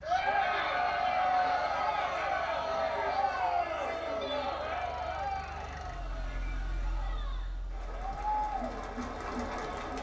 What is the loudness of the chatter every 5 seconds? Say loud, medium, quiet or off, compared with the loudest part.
loud, medium.